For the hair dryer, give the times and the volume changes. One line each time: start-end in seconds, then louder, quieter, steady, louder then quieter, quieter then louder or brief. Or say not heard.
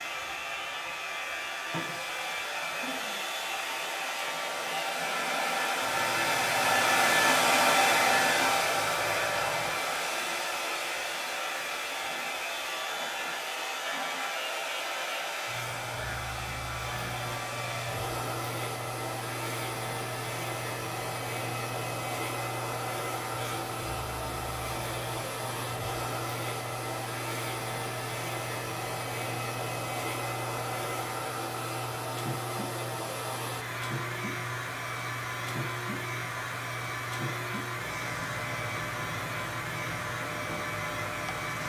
0.0-41.6 quieter.